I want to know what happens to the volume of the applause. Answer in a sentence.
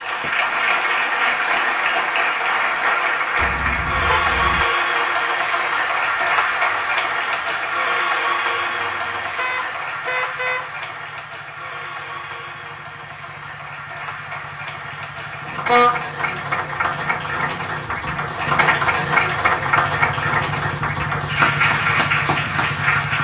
The loudness of the applause goes down, then up.